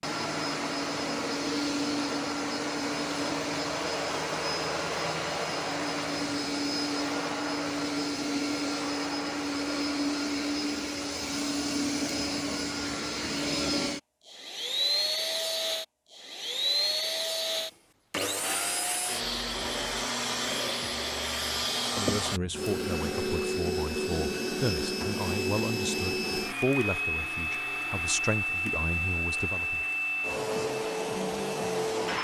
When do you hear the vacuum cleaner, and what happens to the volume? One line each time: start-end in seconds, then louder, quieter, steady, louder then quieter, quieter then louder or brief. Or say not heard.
0.0-32.1 steady.